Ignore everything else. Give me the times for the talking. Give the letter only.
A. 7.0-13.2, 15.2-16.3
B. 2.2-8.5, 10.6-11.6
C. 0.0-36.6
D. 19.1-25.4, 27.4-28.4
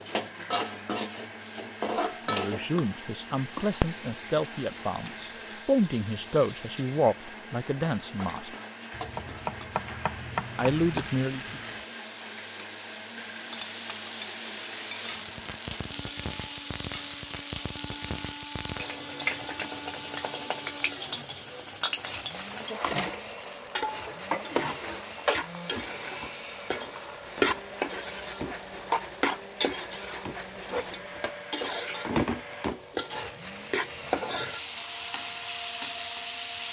B.